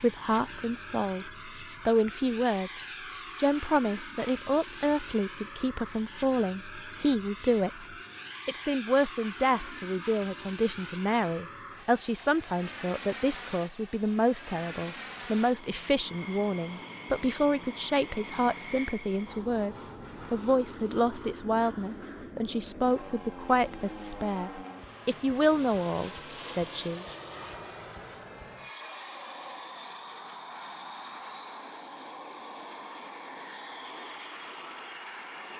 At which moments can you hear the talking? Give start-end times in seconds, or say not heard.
0.0-7.8, 8.4-27.1.